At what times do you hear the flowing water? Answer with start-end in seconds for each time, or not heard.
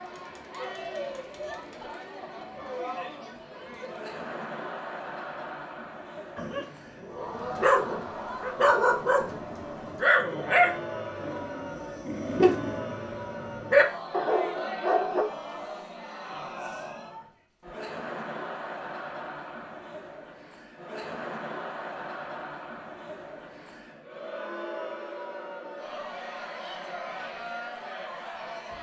not heard.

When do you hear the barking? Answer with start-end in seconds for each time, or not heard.
6.3-15.2.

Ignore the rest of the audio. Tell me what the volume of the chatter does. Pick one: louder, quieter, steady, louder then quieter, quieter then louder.
steady.